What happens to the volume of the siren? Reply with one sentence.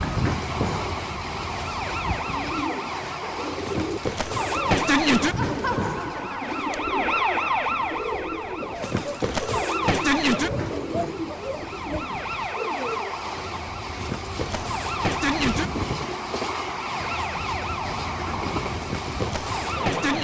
The loudness of the siren goes up, then down.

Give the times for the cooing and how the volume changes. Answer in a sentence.
The cooing can be heard from 2.3 to 13.2 s, at a steady volume.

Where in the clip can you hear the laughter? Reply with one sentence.
The laughter can be heard from 5.3 to 6.7 s.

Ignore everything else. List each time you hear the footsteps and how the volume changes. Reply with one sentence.
The footsteps can't be heard in this clip.